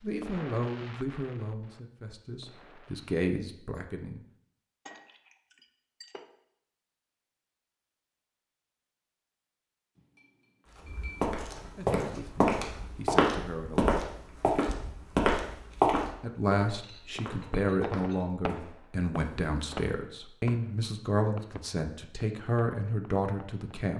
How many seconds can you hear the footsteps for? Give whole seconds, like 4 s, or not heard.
9 s.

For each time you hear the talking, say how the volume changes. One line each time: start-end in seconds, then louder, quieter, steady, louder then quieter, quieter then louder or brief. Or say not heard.
0.0-4.2 quieter then louder
11.8-13.9 brief
16.2-23.9 steady.